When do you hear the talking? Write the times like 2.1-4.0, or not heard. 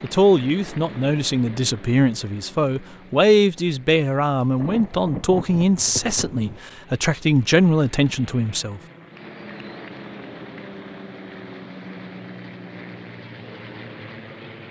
0.0-8.8.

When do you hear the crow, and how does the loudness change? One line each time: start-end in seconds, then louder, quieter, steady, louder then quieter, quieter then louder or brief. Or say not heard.
not heard.